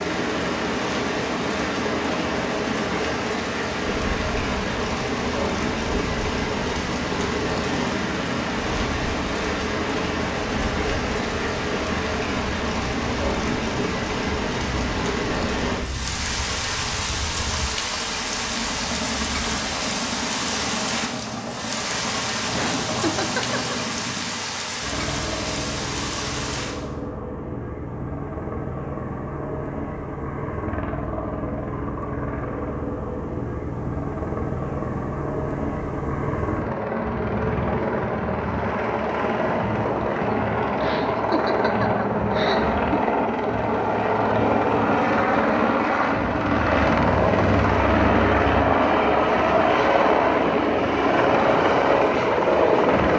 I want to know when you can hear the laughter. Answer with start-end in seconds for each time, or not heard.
22.5-23.8, 40.8-43.1.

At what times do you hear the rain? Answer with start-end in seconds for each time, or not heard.
0.0-26.8.